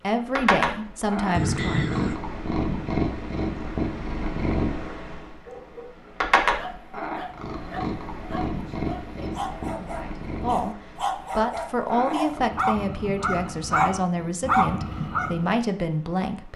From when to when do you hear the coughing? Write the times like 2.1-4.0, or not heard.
1.3-2.1.